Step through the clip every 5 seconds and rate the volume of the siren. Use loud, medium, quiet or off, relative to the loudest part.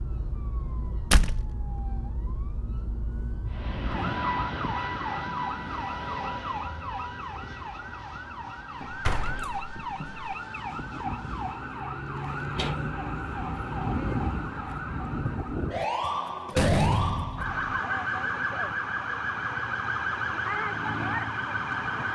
medium, medium, loud, loud, loud.